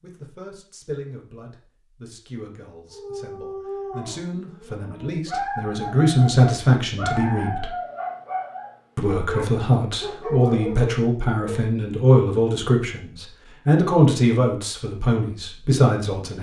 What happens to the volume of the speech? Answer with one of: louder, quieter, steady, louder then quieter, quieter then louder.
louder.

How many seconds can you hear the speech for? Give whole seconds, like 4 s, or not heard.
15 s.